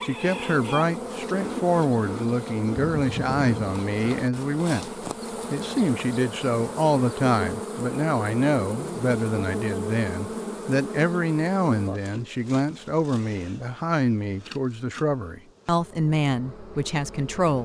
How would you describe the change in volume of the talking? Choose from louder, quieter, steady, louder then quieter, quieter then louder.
steady.